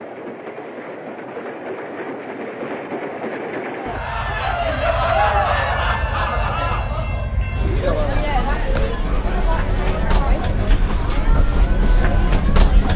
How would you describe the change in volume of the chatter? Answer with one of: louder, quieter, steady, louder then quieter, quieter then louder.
quieter.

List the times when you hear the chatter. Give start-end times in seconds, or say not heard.
3.8-12.9.